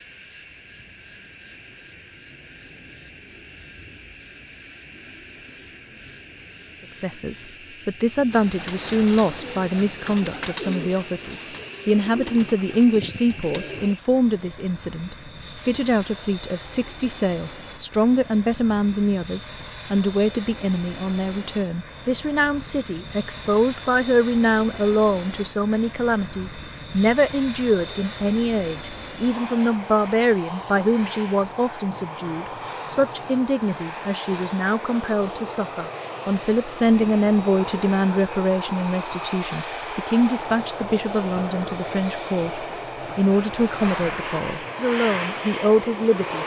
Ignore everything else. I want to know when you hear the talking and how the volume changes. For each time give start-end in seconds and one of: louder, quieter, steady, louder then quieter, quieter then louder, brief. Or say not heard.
7.0-46.4 steady.